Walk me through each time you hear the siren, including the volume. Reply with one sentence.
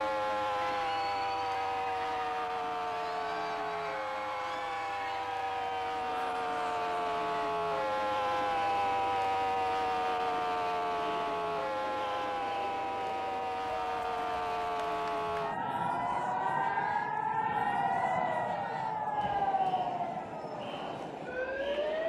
You can hear the siren from 0.0 to 22.0 s, at a steady volume.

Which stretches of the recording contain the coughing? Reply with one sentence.
You can't hear the coughing here.